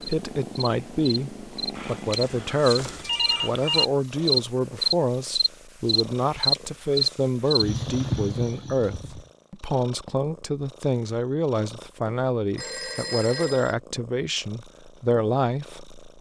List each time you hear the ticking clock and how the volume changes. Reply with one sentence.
You can't hear the ticking clock here.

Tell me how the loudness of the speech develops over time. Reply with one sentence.
The volume of the speech stays about the same.